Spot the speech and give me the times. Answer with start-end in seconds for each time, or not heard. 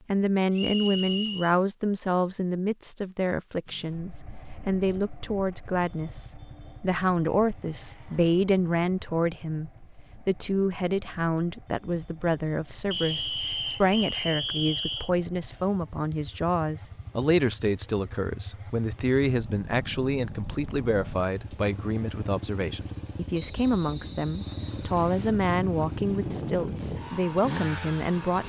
0.1-28.4.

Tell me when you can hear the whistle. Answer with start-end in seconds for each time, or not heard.
0.5-1.6, 12.9-15.1, 23.3-25.4.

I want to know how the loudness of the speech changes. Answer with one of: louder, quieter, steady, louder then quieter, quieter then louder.
steady.